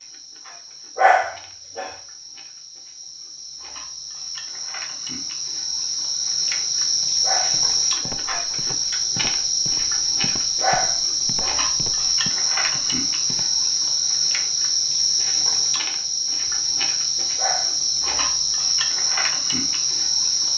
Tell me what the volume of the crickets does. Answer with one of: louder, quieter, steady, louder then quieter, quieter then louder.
louder.